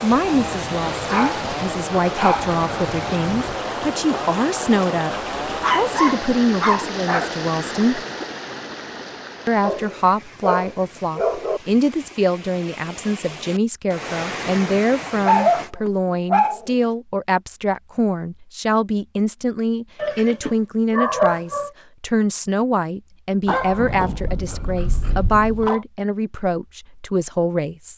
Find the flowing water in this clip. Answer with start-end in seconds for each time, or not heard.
0.0-15.7.